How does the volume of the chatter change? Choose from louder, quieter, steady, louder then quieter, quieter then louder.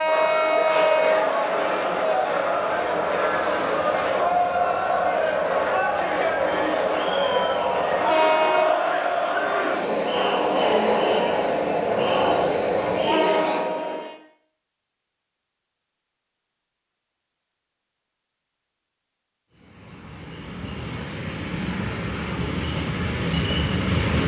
steady.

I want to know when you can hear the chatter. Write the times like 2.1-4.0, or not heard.
0.0-14.1.